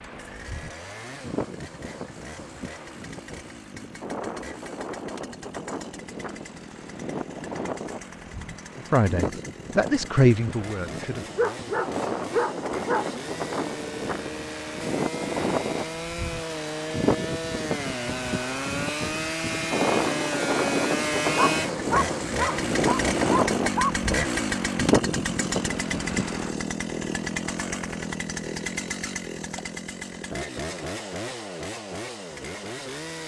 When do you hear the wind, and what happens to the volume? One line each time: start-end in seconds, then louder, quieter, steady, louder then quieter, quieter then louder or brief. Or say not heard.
0.0-26.5 louder.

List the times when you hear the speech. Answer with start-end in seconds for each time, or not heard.
8.8-11.2.